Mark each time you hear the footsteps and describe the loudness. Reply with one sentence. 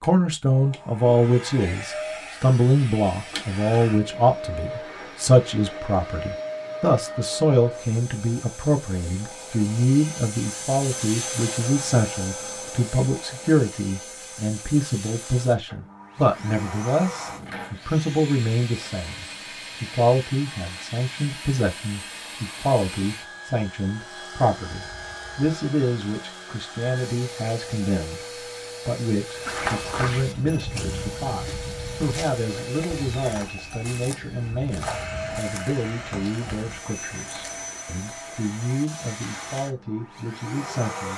The footsteps can be heard from 29.4 to 37.8 s, getting quieter.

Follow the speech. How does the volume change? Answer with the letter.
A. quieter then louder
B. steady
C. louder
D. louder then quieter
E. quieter
E.